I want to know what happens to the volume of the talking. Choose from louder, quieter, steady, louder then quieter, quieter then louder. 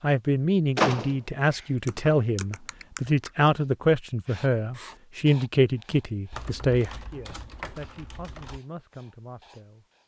quieter.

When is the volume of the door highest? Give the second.
1 s.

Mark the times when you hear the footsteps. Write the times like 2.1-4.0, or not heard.
not heard.